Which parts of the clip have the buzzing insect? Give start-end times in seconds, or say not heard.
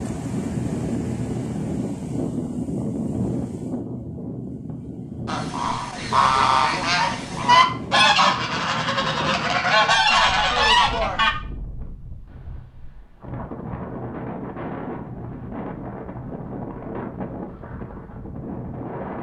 not heard.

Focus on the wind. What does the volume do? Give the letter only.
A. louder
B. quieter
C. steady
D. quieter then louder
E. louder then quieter
B.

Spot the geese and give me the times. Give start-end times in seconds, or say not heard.
5.2-11.3.